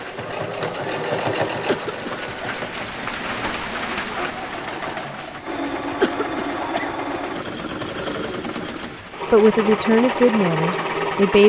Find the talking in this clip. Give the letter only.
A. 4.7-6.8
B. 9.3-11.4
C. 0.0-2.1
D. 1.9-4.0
B.